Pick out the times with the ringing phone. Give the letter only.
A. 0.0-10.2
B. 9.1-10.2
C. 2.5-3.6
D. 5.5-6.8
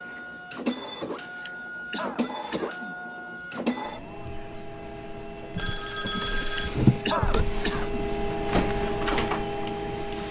D.